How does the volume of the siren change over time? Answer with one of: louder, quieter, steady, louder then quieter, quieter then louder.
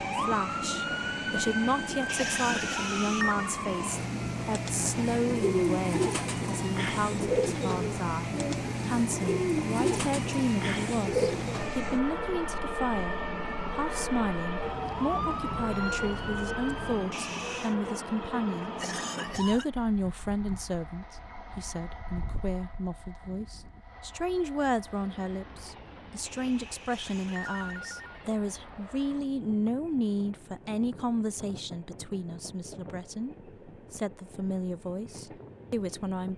steady.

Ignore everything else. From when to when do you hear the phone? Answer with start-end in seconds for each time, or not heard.
2.0-3.5, 17.1-17.8, 26.2-28.0.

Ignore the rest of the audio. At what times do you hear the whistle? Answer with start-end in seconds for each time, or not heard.
not heard.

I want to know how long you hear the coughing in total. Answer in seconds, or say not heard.
3 s.